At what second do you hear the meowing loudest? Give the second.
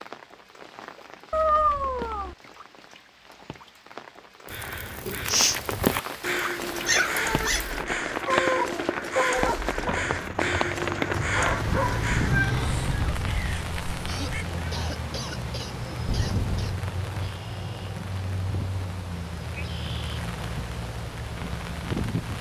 2 s.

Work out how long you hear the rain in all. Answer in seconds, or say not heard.
22 s.